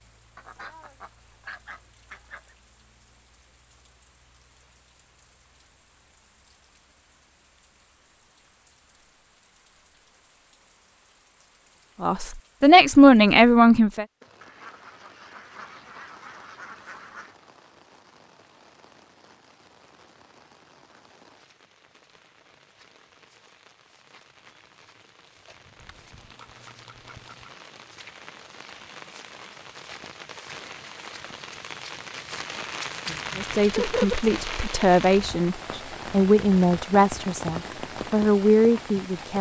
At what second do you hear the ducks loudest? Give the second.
34 s.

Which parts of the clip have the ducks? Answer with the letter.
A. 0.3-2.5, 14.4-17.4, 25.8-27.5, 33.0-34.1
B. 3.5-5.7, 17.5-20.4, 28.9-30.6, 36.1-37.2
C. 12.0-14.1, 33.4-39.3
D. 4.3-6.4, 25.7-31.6
A.